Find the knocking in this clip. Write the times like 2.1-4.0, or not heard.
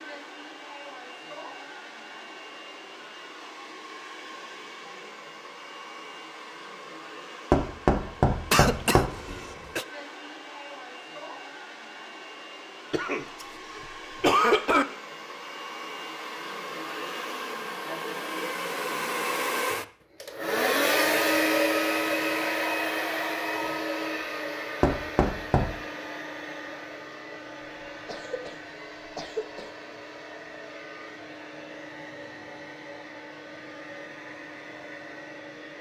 7.5-9.1, 24.8-25.7.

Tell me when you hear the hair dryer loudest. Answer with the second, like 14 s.
21 s.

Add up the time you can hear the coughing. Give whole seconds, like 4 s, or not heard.
5 s.